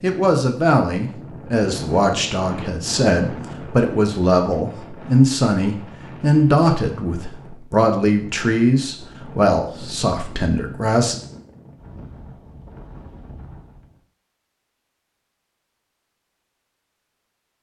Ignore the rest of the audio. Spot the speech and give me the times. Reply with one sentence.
The speech can be heard from 0.0 to 11.2 s.